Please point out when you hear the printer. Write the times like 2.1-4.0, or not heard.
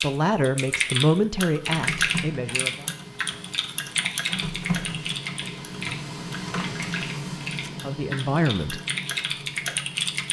1.6-10.2.